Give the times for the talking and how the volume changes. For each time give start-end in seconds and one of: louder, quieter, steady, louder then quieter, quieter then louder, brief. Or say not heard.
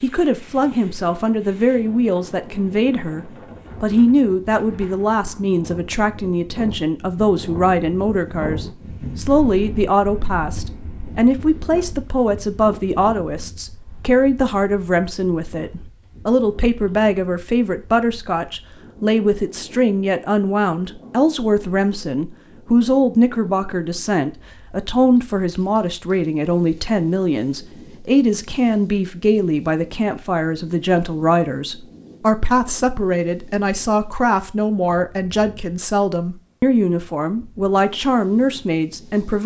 0.0-39.4 steady.